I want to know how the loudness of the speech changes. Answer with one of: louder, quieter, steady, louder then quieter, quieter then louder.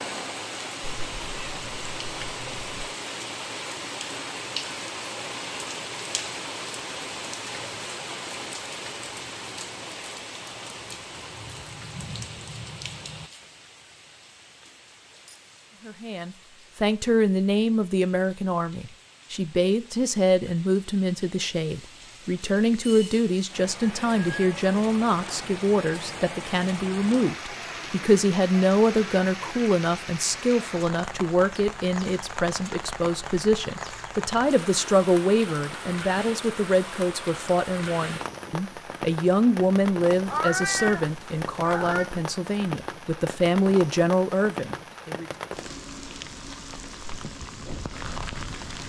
steady.